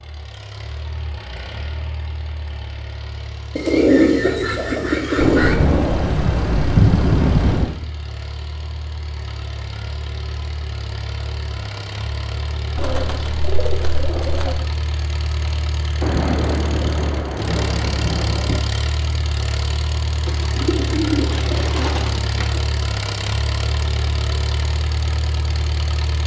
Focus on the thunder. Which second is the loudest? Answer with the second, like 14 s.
7 s.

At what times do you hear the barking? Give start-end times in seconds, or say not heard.
not heard.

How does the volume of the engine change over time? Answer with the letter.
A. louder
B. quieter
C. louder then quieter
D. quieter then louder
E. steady
A.